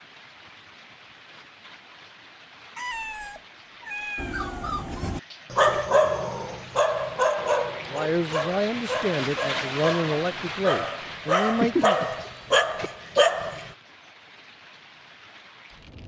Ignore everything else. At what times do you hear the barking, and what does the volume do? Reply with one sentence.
You can hear the barking from 4.2 to 13.7 s, getting quieter then louder.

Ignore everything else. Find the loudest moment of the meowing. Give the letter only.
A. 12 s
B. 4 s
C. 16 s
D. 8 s
A.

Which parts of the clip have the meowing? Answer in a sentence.
You can hear the meowing from 2.8 to 4.5 s and from 11.5 to 12.9 s.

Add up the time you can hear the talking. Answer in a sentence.
The talking can be heard for 4 seconds in total.